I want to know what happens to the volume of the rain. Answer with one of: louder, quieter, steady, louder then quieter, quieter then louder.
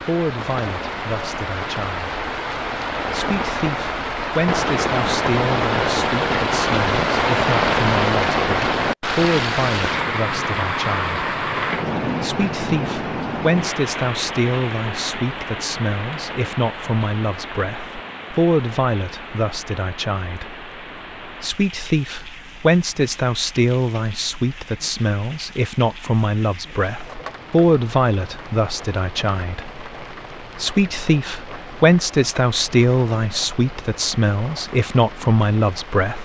quieter.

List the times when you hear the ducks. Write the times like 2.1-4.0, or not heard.
not heard.